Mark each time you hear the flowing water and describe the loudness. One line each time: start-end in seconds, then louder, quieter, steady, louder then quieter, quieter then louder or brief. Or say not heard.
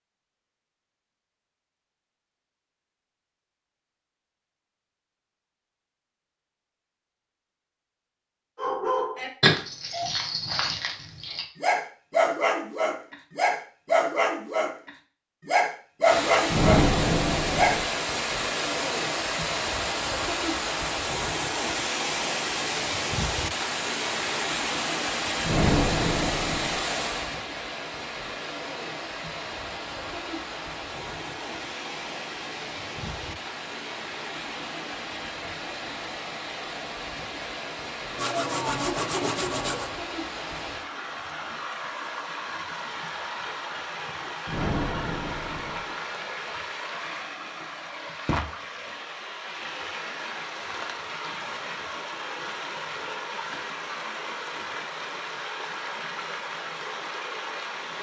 16.0-57.9 quieter.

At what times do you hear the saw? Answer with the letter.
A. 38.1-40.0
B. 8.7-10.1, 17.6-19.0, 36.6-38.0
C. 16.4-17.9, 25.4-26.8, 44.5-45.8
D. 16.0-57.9
A.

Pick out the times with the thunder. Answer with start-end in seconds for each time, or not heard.
16.4-17.9, 25.4-26.8, 44.5-45.8.